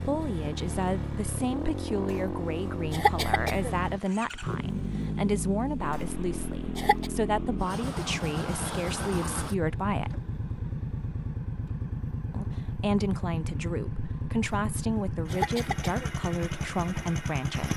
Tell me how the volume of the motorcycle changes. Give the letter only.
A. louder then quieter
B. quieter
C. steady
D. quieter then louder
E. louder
C.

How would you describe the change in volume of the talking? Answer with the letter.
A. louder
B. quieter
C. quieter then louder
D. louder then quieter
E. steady
E.